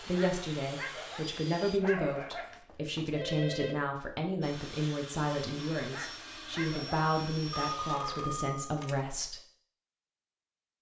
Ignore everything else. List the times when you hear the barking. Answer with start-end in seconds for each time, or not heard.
0.1-2.6, 5.9-7.0.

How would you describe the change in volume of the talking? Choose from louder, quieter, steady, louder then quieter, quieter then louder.
steady.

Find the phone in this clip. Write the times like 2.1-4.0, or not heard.
1.8-3.8, 7.5-9.0.